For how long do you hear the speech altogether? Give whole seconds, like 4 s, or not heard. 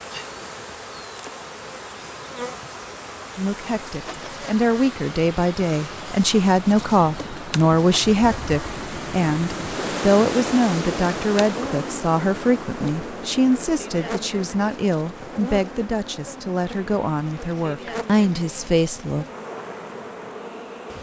16 s.